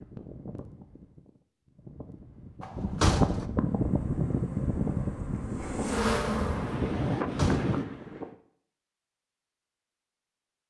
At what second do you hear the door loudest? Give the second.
3 s.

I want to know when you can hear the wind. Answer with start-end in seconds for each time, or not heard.
0.0-8.3.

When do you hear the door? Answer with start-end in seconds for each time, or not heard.
2.6-3.5, 7.2-7.8.